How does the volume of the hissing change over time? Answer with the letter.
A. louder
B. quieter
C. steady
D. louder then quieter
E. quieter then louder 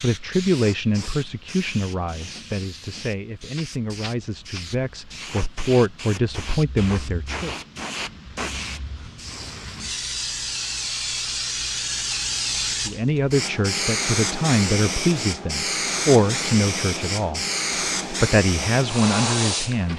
A.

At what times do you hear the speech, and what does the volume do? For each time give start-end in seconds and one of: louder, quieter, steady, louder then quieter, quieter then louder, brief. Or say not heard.
0.0-7.5 quieter then louder
12.8-17.4 louder then quieter
18.1-19.9 brief.